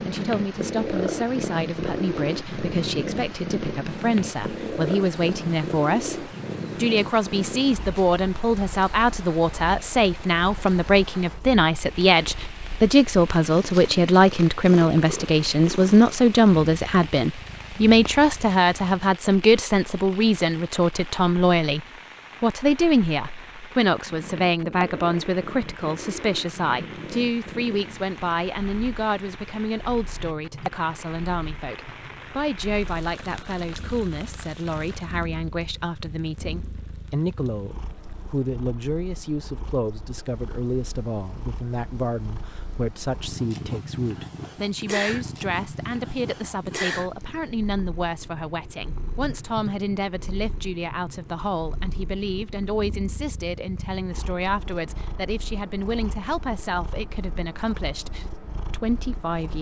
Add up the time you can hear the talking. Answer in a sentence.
You can hear the talking for 59 seconds altogether.